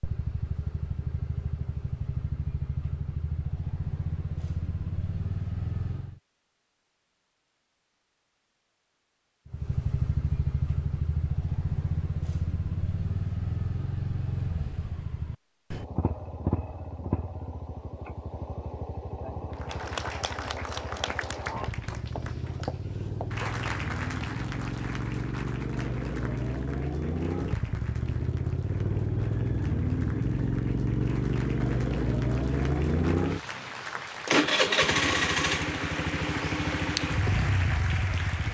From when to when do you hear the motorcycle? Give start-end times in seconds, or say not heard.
0.0-6.2, 9.4-38.5.